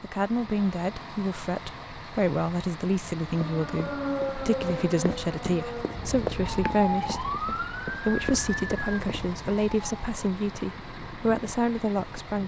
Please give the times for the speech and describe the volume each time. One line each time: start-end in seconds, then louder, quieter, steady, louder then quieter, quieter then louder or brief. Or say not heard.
0.0-12.4 steady.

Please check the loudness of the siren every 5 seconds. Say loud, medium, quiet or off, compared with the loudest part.
loud, loud, off.